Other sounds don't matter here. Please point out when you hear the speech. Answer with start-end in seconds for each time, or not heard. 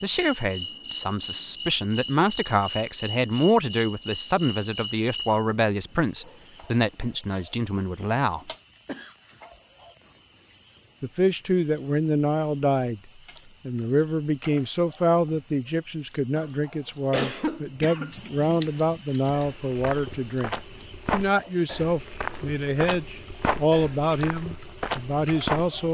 0.0-8.4, 11.0-13.0, 13.7-20.5, 21.1-25.8.